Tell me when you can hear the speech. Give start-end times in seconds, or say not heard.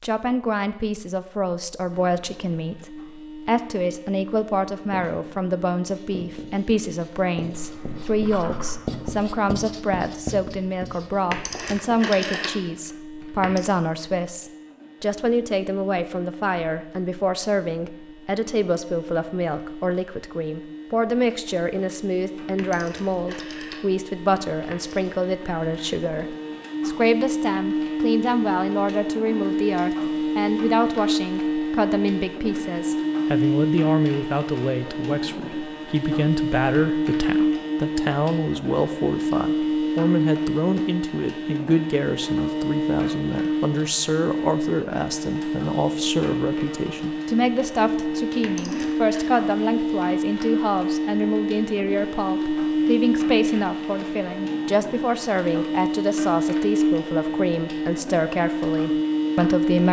0.0-59.8.